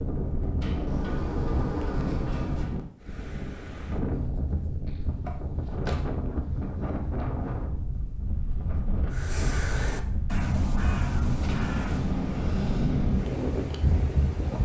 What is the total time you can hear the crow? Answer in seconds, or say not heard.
3 s.